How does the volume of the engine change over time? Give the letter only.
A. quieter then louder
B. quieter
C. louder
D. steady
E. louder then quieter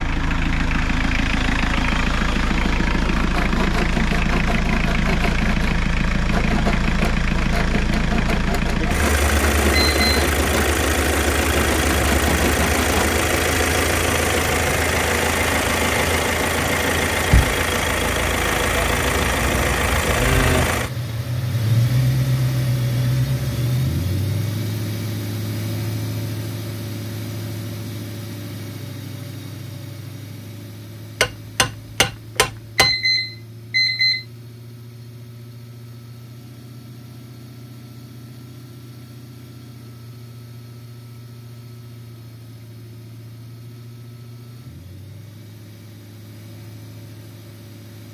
B.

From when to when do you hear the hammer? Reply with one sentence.
The hammer can be heard from 31.2 to 33.0 s.